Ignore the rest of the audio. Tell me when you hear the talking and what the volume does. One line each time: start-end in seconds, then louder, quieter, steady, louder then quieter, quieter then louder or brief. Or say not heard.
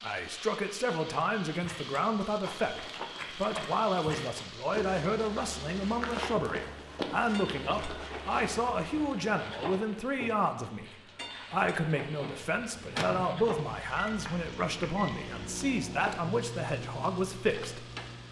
0.0-17.9 steady.